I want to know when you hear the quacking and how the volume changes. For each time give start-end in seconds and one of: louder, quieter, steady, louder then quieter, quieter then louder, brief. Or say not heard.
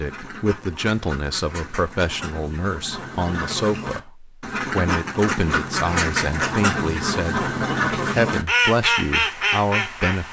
0.0-10.2 louder.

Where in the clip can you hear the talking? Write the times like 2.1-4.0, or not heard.
0.0-10.2.